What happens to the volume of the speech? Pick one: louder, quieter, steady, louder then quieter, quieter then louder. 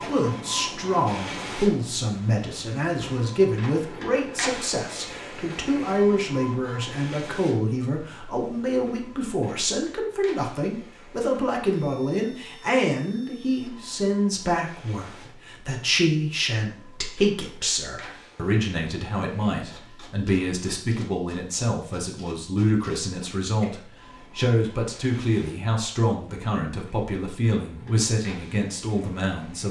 steady.